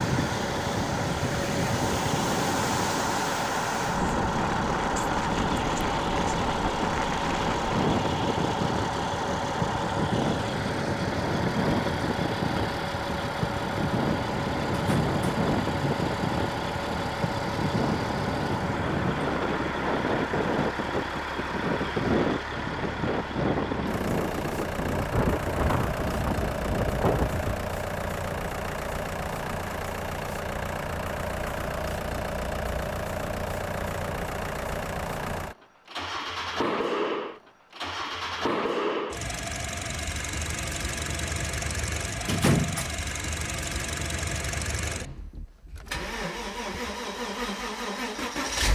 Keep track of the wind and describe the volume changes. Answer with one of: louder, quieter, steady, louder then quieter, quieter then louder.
steady.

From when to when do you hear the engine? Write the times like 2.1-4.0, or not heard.
0.0-48.6.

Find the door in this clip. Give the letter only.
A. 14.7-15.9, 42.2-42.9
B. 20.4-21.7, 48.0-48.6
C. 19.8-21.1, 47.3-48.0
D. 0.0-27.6
A.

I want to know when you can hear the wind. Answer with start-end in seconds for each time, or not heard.
0.0-27.6.